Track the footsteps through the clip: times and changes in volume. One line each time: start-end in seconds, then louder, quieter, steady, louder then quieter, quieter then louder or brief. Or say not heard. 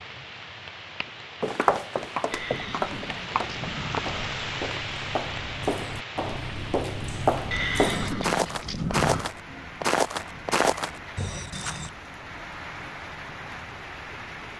1.4-11.9 louder.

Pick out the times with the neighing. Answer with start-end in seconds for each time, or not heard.
2.3-4.3, 7.5-9.3.